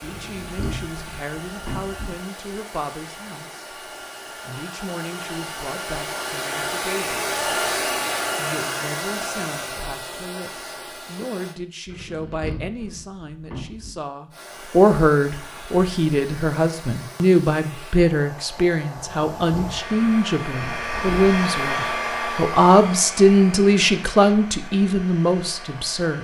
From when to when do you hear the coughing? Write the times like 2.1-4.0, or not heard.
not heard.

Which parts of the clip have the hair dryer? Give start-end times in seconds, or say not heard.
0.0-11.6, 14.3-26.1.